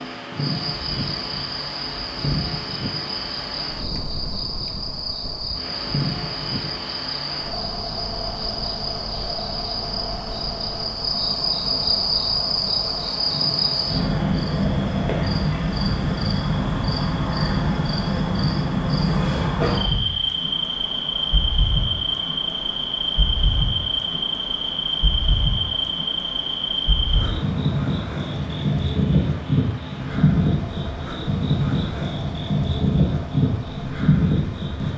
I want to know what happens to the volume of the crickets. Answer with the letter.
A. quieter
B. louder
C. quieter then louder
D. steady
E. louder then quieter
B.